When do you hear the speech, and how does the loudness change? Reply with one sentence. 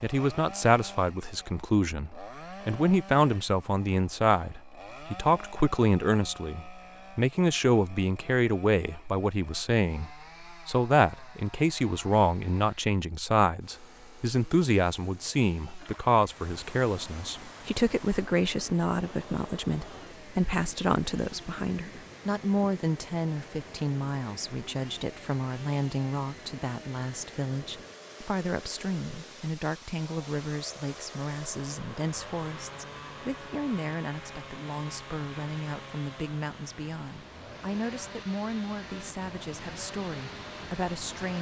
The speech can be heard from 0.0 to 41.3 s, getting quieter.